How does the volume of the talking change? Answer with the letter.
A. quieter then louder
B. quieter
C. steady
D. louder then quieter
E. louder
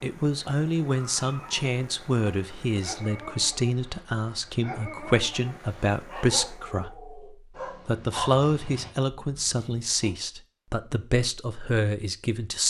C.